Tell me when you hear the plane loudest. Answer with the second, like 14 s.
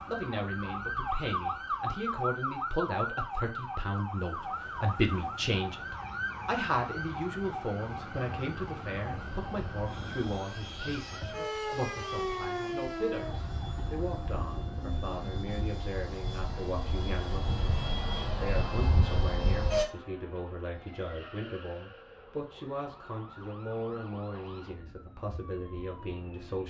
19 s.